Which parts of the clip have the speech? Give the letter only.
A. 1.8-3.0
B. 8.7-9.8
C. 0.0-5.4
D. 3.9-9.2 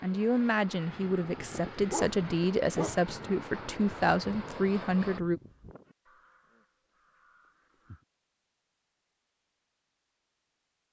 C.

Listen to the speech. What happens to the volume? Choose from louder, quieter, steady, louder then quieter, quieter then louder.
steady.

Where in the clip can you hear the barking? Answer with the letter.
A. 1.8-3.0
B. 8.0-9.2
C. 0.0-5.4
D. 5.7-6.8
A.